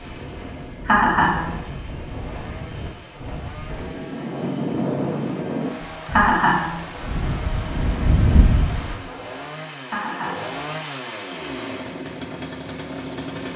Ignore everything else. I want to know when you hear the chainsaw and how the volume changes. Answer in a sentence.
You can hear the chainsaw from 0.0 to 13.5 s, getting louder.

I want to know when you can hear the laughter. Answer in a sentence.
You can hear the laughter from 0.8 to 1.4 s, from 6.1 to 6.7 s and from 9.8 to 10.4 s.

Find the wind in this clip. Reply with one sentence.
You can hear the wind from 0.0 to 9.0 s.